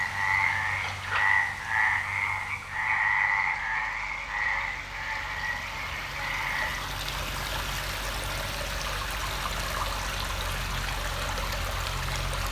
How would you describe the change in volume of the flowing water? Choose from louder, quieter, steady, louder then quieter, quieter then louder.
louder.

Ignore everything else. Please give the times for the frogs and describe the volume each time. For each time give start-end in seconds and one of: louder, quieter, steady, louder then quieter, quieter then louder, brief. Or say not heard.
0.0-6.8 quieter.